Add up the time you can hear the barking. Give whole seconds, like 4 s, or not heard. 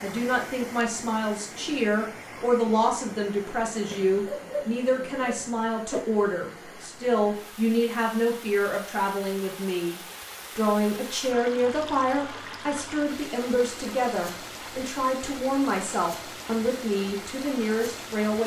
2 s.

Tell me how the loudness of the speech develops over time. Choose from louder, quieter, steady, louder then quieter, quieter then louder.
steady.